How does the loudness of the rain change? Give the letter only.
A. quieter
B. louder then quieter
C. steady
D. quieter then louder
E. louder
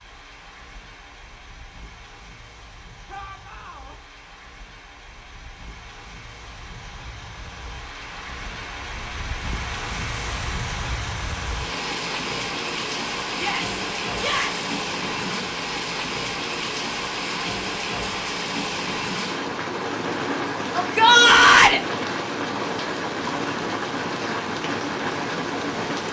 E.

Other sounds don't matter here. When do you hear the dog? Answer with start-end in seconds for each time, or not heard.
not heard.